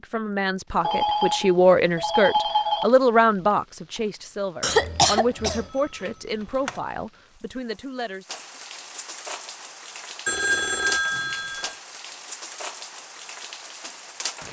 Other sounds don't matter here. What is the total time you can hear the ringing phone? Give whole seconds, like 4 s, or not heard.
5 s.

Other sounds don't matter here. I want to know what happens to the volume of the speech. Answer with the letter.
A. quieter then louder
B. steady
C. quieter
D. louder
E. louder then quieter
C.